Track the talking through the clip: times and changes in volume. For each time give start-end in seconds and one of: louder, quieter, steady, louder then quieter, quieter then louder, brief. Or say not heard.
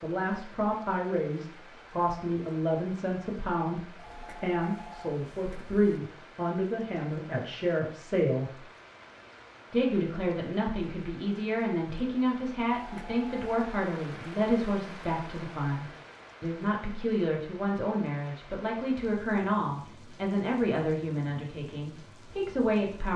0.0-8.6 steady
9.7-23.1 steady.